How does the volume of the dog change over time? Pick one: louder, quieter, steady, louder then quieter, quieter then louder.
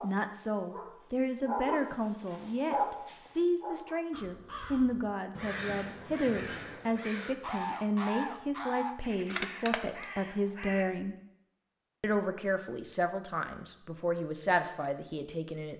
louder then quieter.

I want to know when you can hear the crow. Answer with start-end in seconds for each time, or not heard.
4.1-10.8.